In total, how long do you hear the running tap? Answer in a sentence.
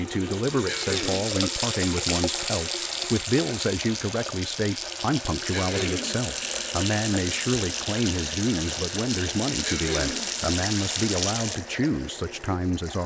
You can hear the running tap for 13 seconds altogether.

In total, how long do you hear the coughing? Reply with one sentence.
The coughing can be heard for 2 seconds in total.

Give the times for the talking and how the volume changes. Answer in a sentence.
The talking can be heard from 0.0 to 13.0 s, at a steady volume.